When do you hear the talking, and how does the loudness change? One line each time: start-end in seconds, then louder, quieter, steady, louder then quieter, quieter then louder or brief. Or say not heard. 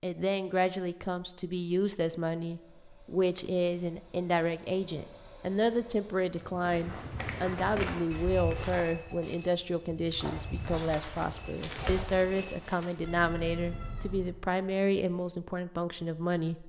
0.0-16.6 steady.